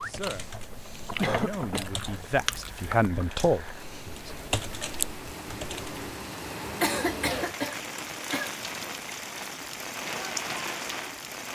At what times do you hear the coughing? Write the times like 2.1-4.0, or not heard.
1.2-1.9, 6.8-8.6.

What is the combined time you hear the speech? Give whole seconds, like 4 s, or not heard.
4 s.